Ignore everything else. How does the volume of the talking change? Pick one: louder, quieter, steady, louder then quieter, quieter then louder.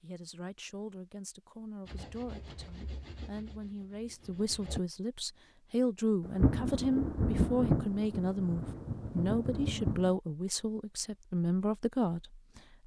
louder.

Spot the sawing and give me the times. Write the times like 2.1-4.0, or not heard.
1.9-4.8.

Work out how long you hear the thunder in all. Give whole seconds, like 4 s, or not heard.
4 s.